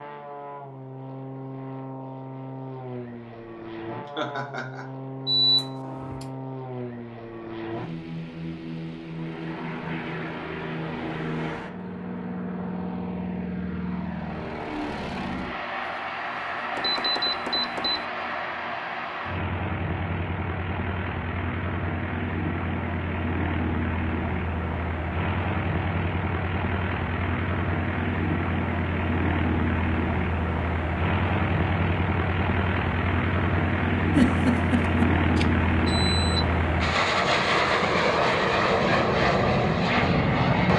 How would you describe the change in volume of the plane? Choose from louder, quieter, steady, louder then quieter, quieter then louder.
louder.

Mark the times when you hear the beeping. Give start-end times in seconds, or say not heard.
5.2-6.2, 16.8-18.1, 35.4-36.5.